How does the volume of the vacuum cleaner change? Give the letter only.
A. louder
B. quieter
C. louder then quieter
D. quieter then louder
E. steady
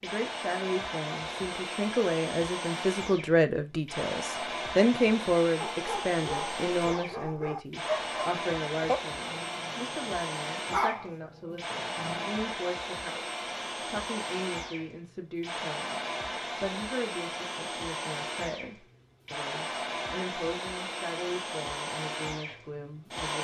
E.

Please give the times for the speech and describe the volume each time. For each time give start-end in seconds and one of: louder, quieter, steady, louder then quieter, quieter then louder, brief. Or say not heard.
0.0-23.3 quieter.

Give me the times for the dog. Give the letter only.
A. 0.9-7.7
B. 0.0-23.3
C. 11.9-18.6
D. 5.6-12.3
D.